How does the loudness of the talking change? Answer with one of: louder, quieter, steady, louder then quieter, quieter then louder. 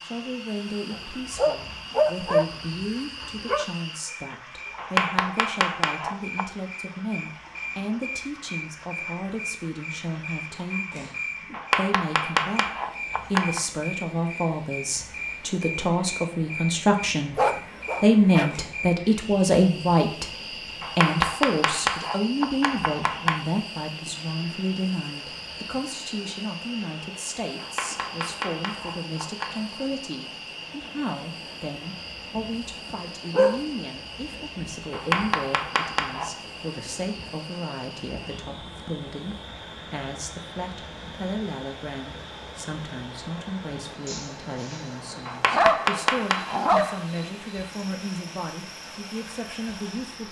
louder then quieter.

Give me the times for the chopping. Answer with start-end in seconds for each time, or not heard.
4.8-6.5, 11.5-13.6, 20.8-23.4, 27.6-29.6, 34.9-36.4, 45.2-46.6.